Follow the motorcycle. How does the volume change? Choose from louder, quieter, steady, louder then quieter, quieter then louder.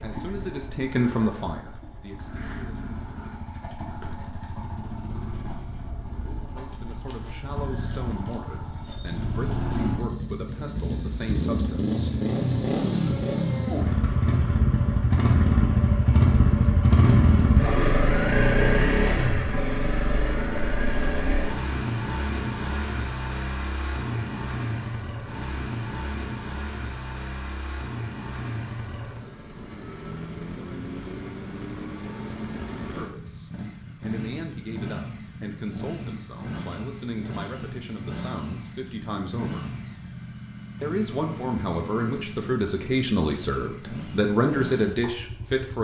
louder then quieter.